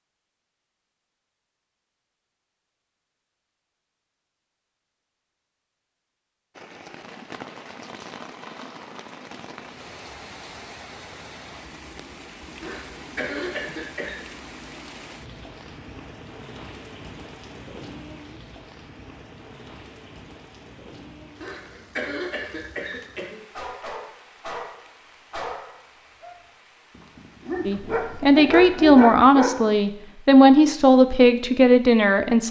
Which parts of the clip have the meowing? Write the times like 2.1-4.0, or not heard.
not heard.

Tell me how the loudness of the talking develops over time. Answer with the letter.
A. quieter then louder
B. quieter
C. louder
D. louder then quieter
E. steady
E.